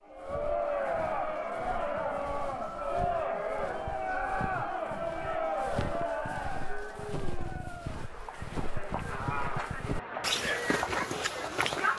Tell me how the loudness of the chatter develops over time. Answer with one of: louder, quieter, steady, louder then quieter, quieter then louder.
quieter then louder.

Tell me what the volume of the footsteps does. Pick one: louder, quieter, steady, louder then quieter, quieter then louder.
louder.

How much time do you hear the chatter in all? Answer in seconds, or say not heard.
12 s.